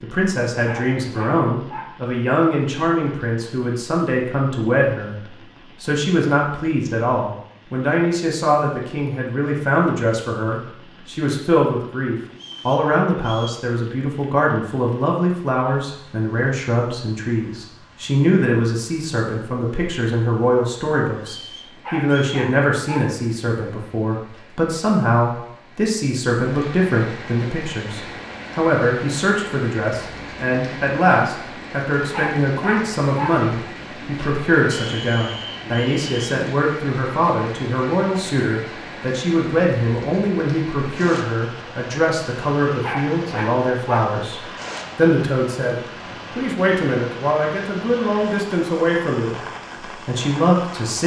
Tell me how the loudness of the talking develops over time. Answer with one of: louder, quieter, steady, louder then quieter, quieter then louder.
steady.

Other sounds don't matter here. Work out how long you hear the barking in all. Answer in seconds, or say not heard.
6 s.